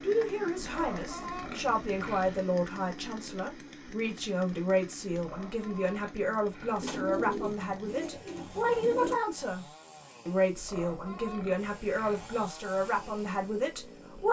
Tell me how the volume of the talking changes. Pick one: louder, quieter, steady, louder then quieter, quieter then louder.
steady.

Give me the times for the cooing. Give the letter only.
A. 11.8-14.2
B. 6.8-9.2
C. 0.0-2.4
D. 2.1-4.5
B.